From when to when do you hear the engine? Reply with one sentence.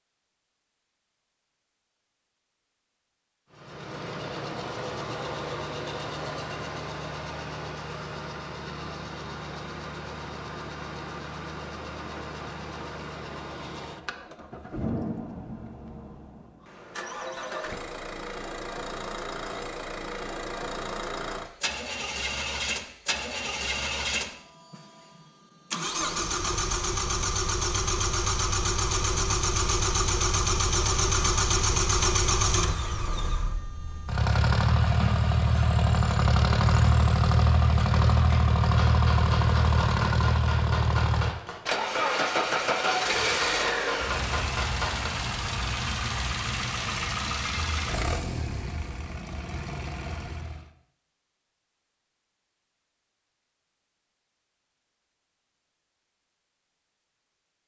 You can hear the engine from 3.5 to 50.7 s.